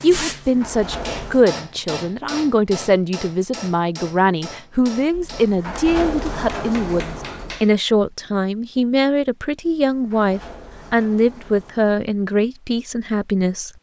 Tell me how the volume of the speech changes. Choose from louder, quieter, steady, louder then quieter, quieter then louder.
steady.